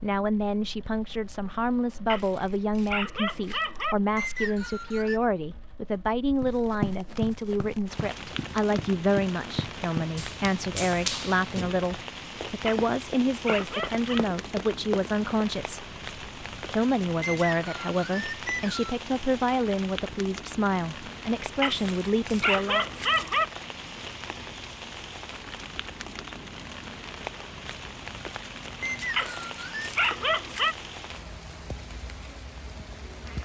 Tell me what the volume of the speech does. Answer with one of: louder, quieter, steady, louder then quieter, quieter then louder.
steady.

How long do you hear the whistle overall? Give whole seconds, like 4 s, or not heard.
4 s.